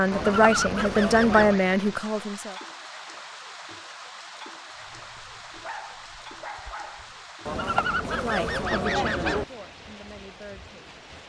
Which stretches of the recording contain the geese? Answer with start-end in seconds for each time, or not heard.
0.1-1.6, 7.5-9.4.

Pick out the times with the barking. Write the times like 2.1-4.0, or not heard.
4.8-7.2.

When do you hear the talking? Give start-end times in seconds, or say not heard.
0.0-2.5, 8.1-10.9.